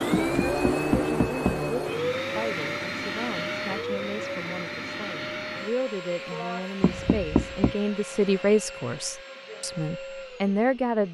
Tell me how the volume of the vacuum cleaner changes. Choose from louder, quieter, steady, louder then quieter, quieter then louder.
quieter.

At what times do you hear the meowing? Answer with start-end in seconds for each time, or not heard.
not heard.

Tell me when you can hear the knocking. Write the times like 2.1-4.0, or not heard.
0.1-1.6, 6.8-7.8.